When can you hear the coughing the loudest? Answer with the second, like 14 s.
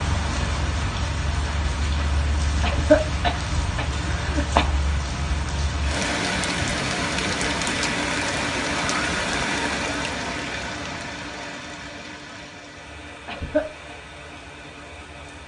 3 s.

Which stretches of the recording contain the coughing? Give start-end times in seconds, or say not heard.
2.6-4.7, 13.2-13.8.